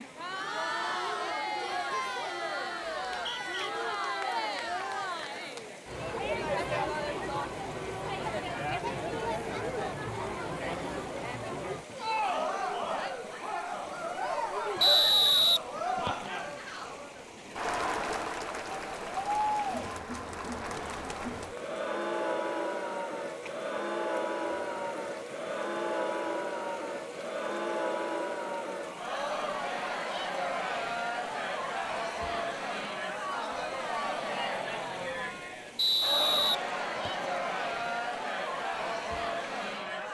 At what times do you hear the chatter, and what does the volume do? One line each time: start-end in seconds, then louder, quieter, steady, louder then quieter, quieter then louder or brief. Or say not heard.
0.0-40.0 steady.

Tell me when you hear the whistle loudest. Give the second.
15 s.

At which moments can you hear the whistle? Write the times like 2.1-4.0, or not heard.
3.0-3.7, 14.8-16.3, 35.8-37.2.